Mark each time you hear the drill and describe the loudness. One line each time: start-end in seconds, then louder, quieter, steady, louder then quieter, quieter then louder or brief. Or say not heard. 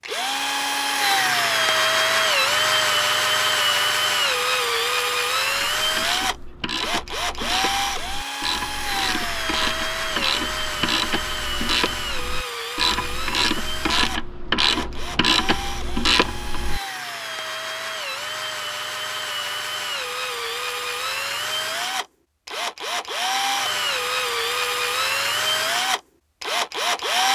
0.0-27.2 quieter then louder.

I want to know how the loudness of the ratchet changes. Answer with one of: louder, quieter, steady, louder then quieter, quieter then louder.
louder.